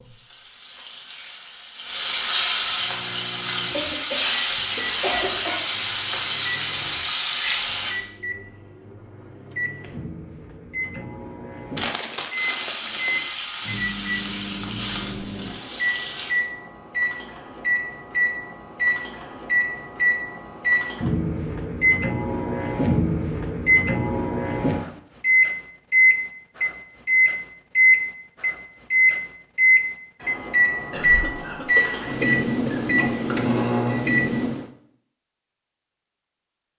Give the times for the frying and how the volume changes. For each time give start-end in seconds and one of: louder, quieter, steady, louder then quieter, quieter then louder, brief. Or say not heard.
0.0-8.0 louder
12.3-16.4 quieter.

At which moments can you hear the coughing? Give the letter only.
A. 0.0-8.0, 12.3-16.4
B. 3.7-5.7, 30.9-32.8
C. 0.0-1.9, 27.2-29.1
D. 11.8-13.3
B.